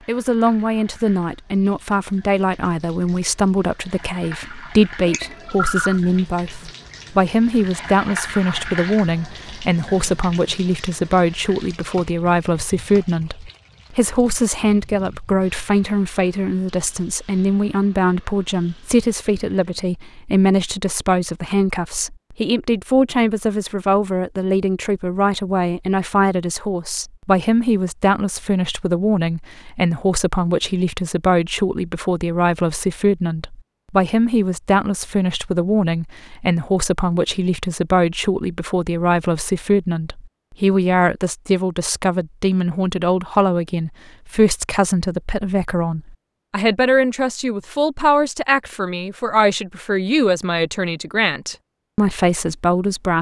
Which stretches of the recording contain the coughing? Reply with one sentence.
The coughing can be heard from 5.0 to 6.0 s.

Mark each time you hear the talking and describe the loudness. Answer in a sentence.
The talking can be heard from 0.1 to 53.1 s, at a steady volume.